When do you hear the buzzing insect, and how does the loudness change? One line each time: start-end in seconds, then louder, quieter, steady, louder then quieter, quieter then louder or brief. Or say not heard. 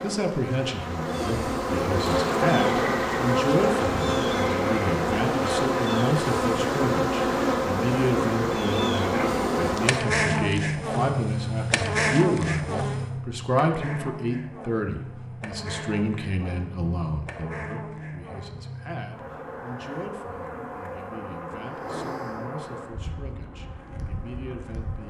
0.0-25.0 quieter.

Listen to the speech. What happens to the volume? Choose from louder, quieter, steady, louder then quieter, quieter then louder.
quieter.